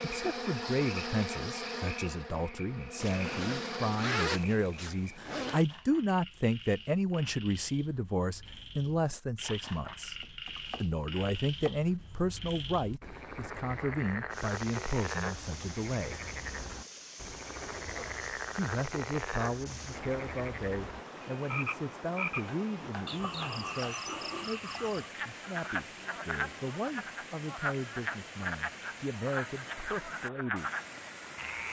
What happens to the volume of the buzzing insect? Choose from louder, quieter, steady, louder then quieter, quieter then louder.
quieter then louder.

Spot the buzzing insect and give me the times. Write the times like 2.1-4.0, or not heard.
0.0-4.2.